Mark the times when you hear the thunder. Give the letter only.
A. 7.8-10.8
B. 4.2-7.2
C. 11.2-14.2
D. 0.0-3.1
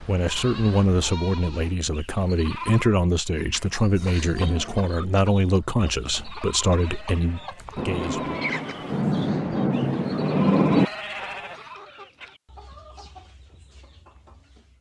A.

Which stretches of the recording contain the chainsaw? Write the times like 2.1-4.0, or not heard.
not heard.